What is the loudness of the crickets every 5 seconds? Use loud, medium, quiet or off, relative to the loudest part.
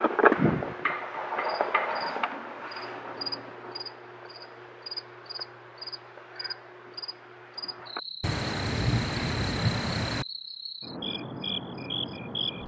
loud, medium, medium.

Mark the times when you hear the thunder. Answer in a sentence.
You can hear the thunder from 8.2 to 10.2 s.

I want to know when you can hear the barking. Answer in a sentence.
The barking can't be heard in this clip.